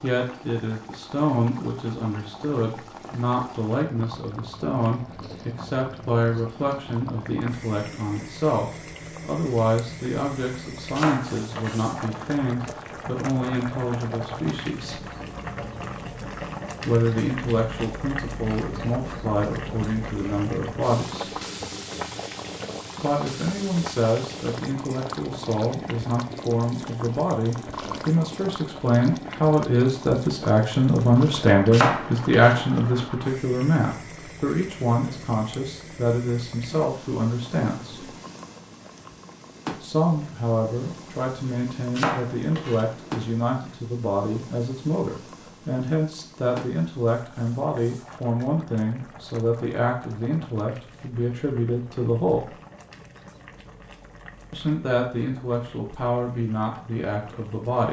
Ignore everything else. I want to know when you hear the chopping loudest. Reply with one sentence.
The loudest moment of the chopping is at 32 seconds.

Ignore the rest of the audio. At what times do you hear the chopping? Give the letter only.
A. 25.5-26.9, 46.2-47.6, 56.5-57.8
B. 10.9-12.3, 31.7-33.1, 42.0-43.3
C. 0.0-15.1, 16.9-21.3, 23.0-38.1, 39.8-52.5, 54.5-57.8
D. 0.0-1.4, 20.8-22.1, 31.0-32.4
B.